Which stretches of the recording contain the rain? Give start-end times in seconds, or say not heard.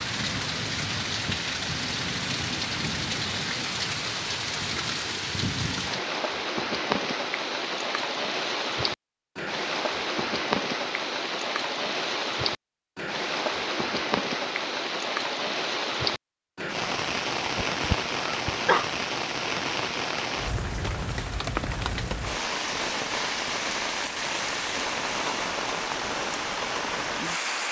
0.0-27.6.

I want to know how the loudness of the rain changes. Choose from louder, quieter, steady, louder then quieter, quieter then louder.
steady.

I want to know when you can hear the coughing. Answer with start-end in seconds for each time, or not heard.
17.4-18.9.